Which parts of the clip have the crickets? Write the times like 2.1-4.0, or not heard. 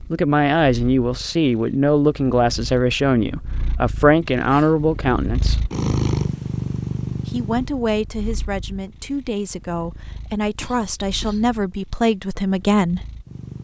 not heard.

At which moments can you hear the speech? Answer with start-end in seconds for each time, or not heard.
0.1-5.7, 7.2-13.0.